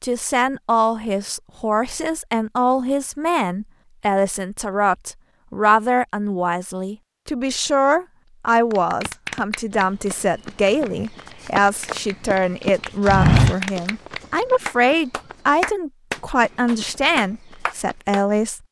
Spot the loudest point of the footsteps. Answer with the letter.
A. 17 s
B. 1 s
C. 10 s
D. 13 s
D.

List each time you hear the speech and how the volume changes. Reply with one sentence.
You can hear the speech from 0.0 to 18.6 s, at a steady volume.